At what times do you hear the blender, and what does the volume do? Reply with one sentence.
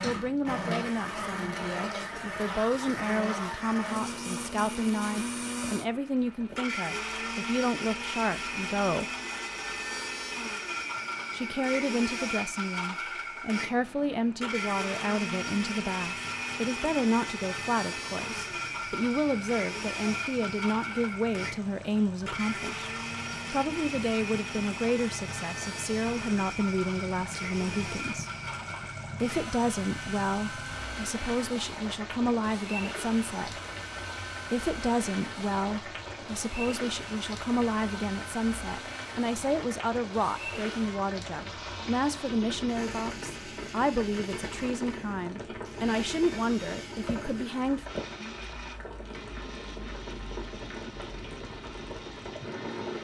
The blender can be heard from 0.0 to 52.9 s, getting quieter.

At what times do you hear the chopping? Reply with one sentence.
You can't hear the chopping here.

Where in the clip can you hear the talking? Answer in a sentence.
The talking can be heard from 0.0 to 9.1 s, from 11.3 to 22.9 s, from 23.5 to 28.3 s, from 29.2 to 33.6 s and from 34.5 to 47.9 s.